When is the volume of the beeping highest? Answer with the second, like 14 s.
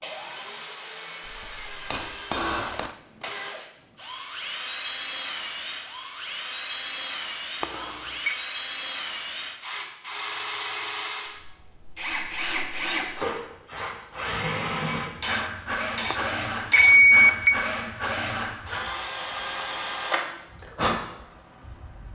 17 s.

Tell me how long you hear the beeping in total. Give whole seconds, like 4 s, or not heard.
2 s.